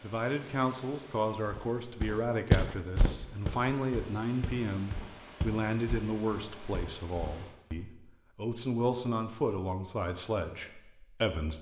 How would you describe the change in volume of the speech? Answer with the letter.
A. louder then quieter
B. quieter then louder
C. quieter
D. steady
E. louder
D.